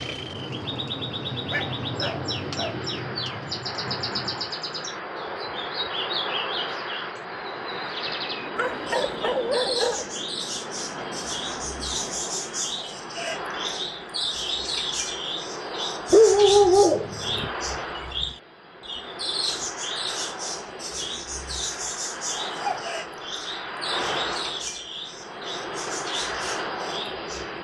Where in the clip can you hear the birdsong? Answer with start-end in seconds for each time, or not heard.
0.0-27.5.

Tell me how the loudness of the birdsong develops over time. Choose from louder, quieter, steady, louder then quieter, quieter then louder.
steady.